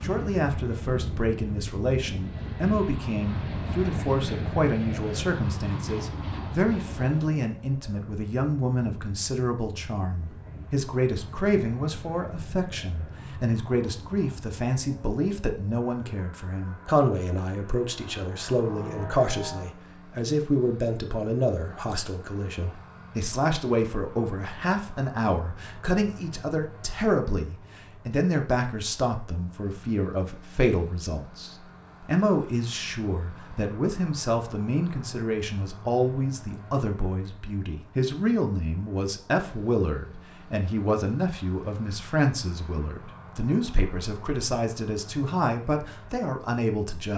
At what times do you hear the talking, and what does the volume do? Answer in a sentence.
The talking can be heard from 0.0 to 47.1 s, at a steady volume.